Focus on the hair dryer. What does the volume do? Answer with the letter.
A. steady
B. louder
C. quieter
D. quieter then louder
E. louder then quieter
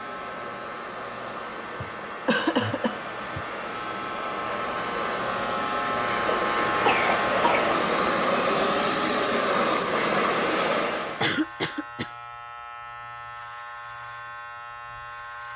B.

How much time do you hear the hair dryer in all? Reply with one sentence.
The hair dryer can be heard for 11 seconds in total.